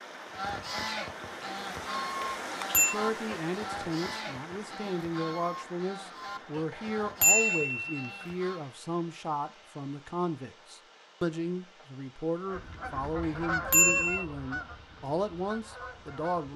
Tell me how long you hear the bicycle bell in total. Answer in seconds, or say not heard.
3 s.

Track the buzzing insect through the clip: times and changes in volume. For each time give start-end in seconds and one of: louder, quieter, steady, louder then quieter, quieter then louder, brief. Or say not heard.
not heard.